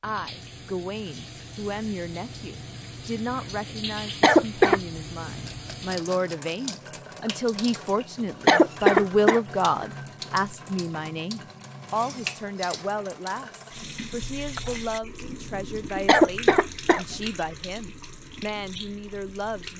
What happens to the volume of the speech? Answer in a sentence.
The volume of the speech goes up, then down.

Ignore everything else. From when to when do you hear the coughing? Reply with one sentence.
The coughing can be heard from 4.2 to 4.8 s, from 8.4 to 9.8 s and from 16.1 to 17.1 s.